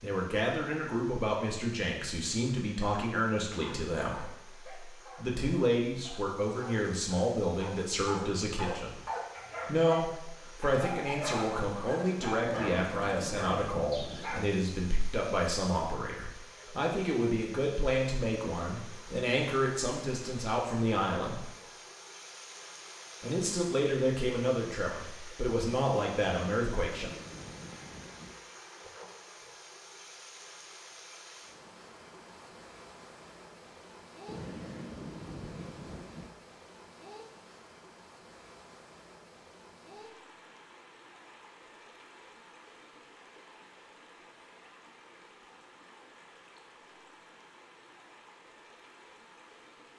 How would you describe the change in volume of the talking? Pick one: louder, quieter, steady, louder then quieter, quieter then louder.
steady.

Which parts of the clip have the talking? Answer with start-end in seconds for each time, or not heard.
0.0-9.0, 9.7-21.5, 23.2-27.1.